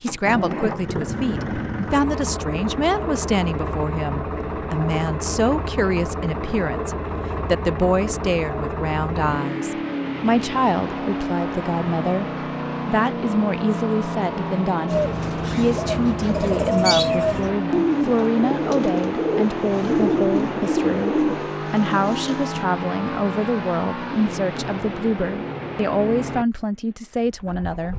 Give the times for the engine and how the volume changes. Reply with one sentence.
You can hear the engine from 0.1 to 27.9 s, at a steady volume.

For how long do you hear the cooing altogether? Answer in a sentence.
You can hear the cooing for 8 seconds altogether.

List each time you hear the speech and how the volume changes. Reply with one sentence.
The speech can be heard from 0.0 to 27.9 s, at a steady volume.